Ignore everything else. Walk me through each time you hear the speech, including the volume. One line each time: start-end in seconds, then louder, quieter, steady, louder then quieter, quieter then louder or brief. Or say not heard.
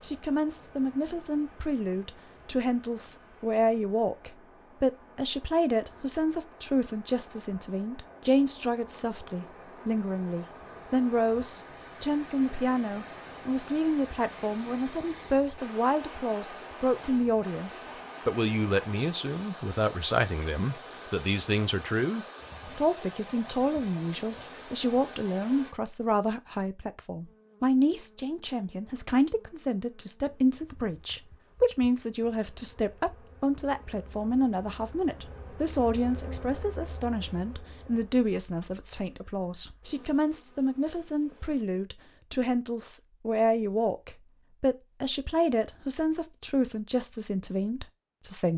0.0-48.5 steady.